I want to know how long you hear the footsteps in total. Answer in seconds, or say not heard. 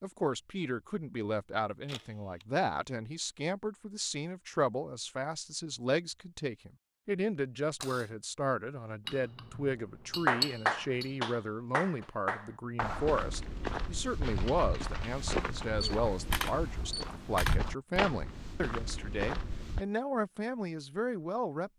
7 s.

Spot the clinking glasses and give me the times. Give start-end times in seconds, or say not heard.
9.1-11.2.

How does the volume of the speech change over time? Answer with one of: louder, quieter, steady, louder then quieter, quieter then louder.
steady.